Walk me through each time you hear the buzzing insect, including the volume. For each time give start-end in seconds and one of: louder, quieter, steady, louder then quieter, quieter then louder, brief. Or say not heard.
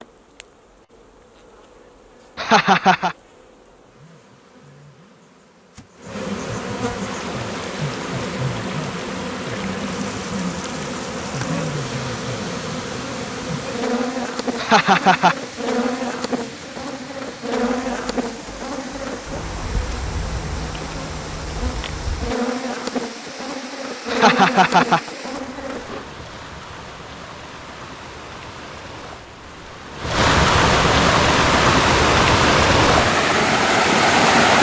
0.0-26.1 louder.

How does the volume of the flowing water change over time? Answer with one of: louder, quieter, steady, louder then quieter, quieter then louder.
louder.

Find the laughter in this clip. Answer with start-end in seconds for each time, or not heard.
2.4-3.1, 14.6-15.3, 24.1-25.1.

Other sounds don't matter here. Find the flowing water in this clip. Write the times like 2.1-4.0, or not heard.
7.0-34.5.